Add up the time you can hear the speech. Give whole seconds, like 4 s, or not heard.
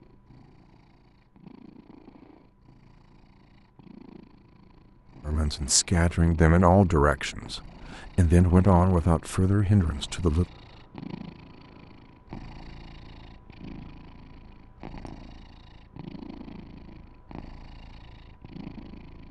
5 s.